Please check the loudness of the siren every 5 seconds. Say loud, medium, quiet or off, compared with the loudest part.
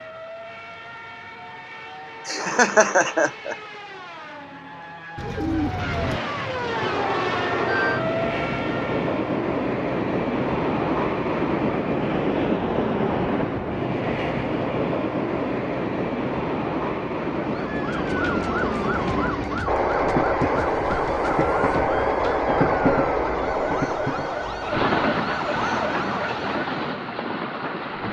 medium, loud, off, loud, loud, loud.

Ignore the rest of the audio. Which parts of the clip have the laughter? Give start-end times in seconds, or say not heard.
2.2-3.5.